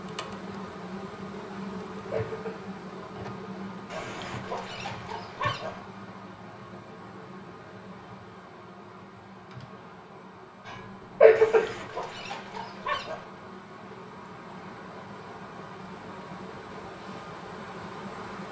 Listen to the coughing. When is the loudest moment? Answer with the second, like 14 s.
11 s.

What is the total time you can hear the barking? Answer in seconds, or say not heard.
4 s.